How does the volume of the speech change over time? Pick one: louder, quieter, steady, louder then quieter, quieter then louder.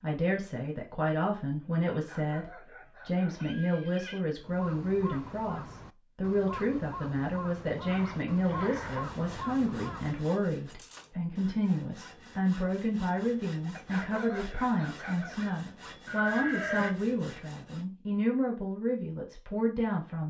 steady.